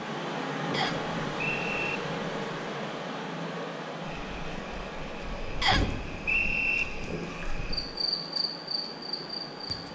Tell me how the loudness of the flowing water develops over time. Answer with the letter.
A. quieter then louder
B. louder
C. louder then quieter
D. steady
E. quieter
E.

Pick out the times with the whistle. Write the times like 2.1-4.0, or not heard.
0.7-2.0, 5.6-6.8.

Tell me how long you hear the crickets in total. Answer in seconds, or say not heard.
6 s.